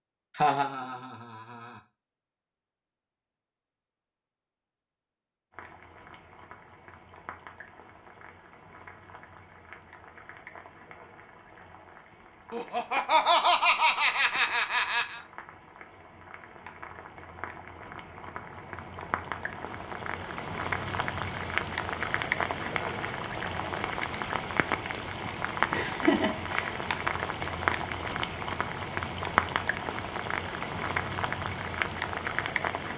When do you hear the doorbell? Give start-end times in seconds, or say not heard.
not heard.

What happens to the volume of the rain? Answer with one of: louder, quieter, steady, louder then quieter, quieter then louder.
louder.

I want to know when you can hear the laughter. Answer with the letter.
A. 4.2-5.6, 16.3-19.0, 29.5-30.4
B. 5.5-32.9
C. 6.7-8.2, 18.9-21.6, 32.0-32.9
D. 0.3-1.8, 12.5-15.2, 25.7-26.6
D.